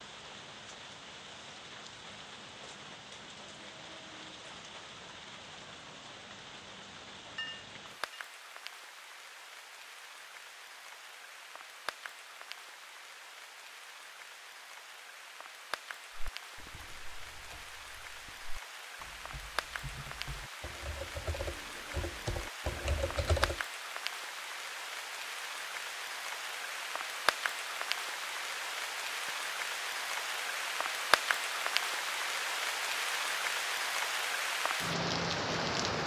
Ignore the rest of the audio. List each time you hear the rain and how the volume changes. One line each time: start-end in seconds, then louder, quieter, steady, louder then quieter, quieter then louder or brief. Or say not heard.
0.0-36.0 louder.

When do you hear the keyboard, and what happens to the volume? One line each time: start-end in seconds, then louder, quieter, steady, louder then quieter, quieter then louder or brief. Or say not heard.
16.1-23.6 louder.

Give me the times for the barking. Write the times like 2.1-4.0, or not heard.
not heard.